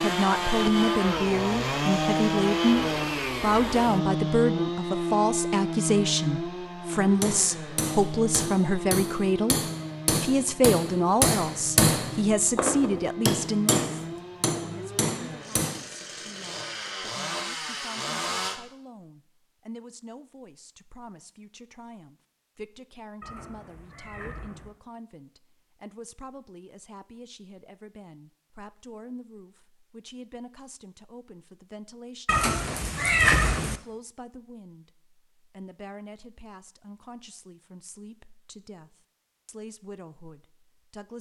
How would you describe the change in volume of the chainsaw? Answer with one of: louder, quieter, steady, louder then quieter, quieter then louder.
quieter.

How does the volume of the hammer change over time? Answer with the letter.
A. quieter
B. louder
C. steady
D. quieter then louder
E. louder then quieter
E.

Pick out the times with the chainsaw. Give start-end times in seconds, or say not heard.
0.0-18.6.